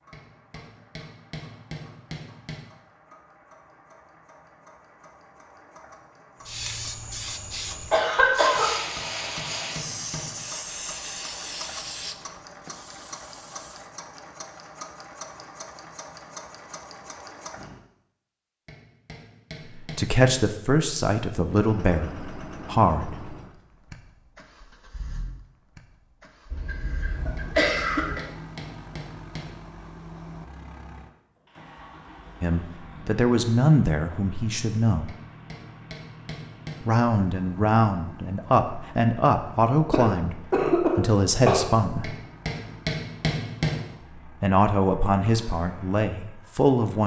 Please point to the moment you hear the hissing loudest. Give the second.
9 s.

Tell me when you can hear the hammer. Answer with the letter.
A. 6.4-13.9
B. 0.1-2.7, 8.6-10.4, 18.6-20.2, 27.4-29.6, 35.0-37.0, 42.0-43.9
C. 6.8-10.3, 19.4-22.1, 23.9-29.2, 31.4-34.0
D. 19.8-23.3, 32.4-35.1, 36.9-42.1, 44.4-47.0
B.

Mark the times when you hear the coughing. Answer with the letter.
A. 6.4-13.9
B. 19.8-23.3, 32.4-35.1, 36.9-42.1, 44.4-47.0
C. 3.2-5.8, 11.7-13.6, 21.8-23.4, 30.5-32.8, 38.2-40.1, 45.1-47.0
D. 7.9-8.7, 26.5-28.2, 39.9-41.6
D.